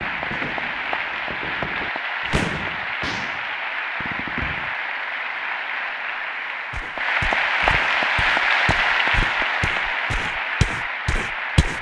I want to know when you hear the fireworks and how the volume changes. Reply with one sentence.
The fireworks can be heard from 0.0 to 4.8 s, getting louder then quieter.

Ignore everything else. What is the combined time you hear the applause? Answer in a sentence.
The applause can be heard for 12 seconds in total.